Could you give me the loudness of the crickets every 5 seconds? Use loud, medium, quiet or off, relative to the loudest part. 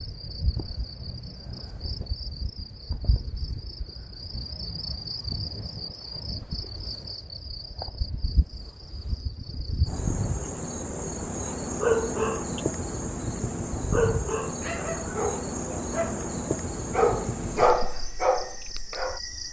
medium, medium, loud, loud.